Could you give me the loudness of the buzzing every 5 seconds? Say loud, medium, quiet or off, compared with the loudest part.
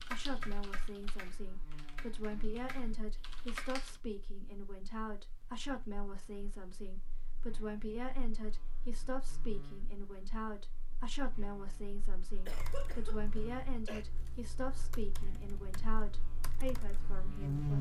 quiet, quiet, quiet, loud.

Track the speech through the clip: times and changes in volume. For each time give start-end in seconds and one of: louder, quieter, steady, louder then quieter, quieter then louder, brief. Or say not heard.
0.0-17.7 steady.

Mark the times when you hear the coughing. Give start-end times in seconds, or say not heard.
12.4-14.1.